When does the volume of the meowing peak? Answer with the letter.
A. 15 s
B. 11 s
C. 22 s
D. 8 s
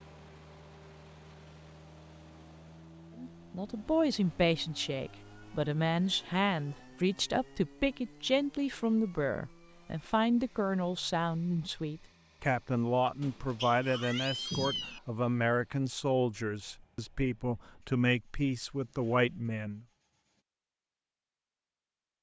A.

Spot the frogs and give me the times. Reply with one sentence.
You can't hear the frogs here.